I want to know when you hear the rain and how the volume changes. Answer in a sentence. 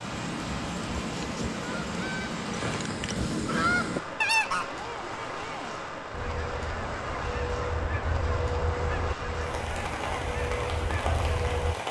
You can hear the rain from 0.0 to 11.8 s, at a steady volume.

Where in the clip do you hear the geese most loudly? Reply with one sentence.
The volume of the geese peaks at 4 seconds.